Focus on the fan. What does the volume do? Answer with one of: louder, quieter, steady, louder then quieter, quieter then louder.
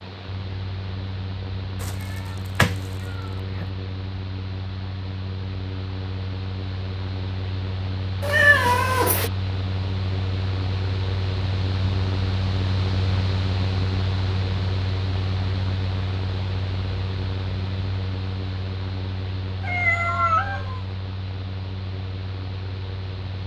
louder then quieter.